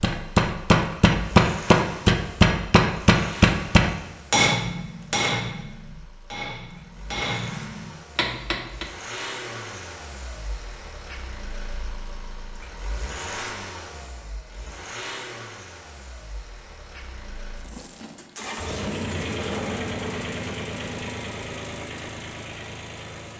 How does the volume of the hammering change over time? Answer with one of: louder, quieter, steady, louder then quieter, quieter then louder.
quieter.